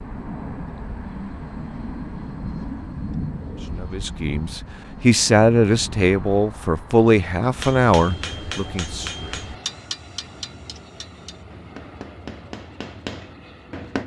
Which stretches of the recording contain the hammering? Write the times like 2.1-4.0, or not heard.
7.5-14.0.